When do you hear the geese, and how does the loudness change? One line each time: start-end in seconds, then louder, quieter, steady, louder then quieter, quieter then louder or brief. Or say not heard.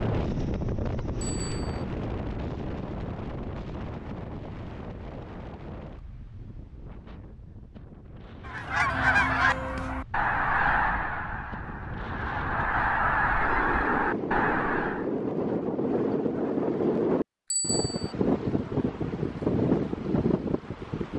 8.4-15.1 quieter then louder.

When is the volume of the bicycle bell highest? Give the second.
18 s.